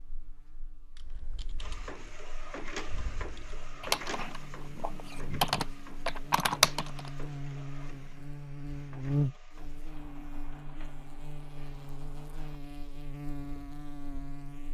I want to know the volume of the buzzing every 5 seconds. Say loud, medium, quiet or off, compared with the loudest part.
quiet, loud, medium.